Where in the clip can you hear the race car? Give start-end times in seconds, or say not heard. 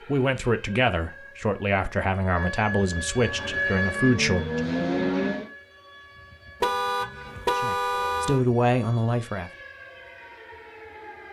3.1-5.5.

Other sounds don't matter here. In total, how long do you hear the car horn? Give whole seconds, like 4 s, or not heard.
2 s.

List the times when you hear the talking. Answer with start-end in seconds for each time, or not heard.
0.1-4.8, 7.5-9.5.